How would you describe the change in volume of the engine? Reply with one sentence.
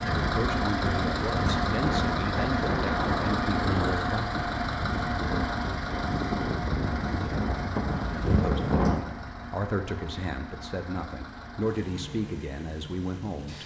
The volume of the engine goes down.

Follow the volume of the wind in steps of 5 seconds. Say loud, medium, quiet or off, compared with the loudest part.
loud, loud, off.